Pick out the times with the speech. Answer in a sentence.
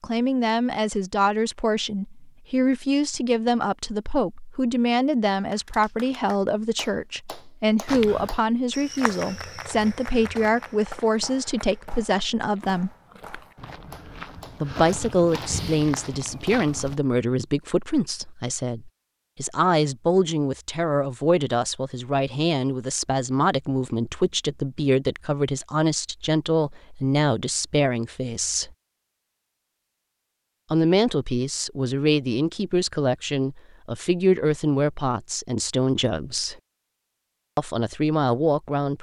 The speech can be heard from 0.0 to 12.9 s, from 14.6 to 28.7 s, from 30.7 to 36.5 s and from 37.5 to 38.9 s.